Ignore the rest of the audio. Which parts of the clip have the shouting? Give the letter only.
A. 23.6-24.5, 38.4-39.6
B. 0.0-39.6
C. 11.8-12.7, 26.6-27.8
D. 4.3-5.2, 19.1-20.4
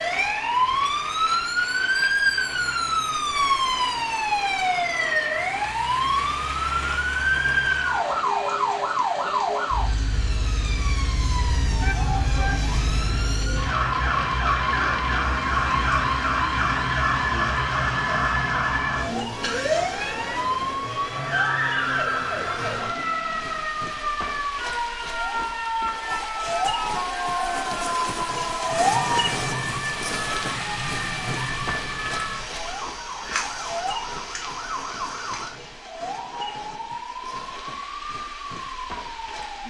C.